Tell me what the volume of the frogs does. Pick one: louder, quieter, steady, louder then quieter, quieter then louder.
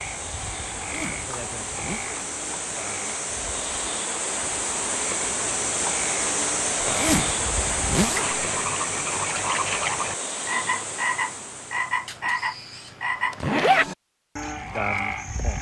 louder.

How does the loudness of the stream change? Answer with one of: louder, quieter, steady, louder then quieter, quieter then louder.
louder then quieter.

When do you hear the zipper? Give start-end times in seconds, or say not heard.
0.8-2.1, 6.8-8.4, 13.4-13.9.